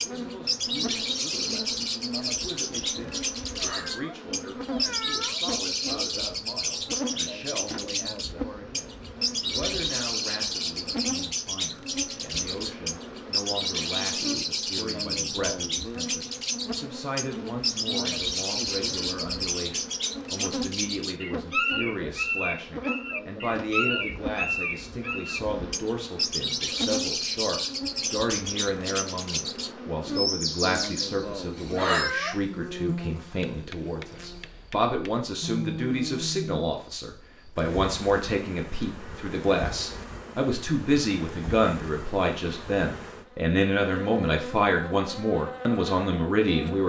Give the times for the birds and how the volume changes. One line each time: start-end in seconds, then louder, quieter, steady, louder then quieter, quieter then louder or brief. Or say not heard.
0.0-31.9 steady.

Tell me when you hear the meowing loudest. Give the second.
32 s.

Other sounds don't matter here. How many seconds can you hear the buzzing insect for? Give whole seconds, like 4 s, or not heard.
47 s.